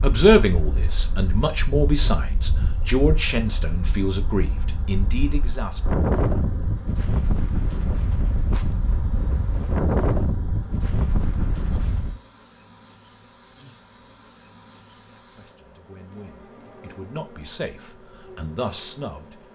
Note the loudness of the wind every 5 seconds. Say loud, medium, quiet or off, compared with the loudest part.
medium, loud, loud, off.